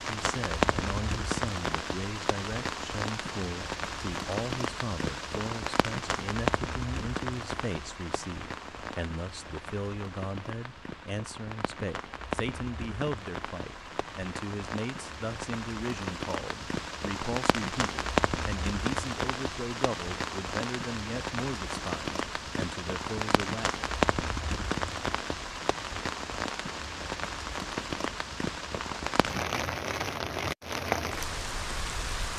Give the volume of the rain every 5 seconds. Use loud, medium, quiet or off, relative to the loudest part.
loud, loud, medium, loud, loud, loud, loud.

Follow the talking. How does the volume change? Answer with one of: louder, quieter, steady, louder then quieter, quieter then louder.
steady.